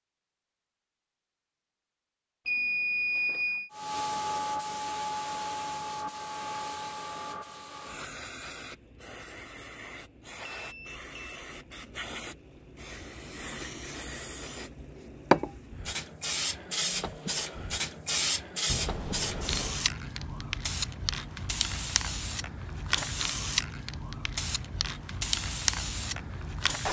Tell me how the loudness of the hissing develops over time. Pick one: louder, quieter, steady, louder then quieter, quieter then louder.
quieter then louder.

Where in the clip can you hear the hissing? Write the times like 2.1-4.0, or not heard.
3.7-26.8.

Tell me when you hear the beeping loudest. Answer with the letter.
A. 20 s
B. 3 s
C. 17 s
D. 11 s
B.